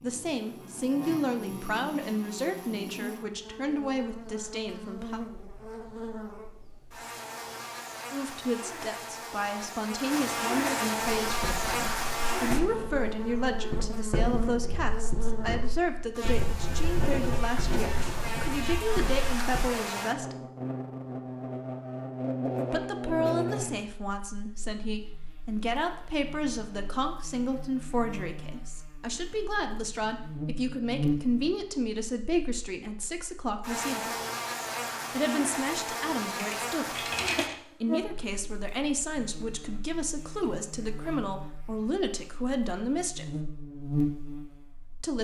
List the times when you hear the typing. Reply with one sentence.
The typing can be heard from 36.0 to 37.5 s.